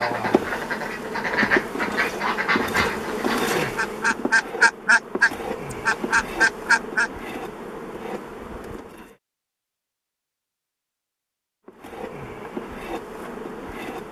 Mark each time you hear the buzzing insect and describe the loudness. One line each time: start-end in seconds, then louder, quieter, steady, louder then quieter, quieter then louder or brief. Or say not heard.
0.0-9.2 quieter
11.7-14.0 brief.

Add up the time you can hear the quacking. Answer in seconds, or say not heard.
7 s.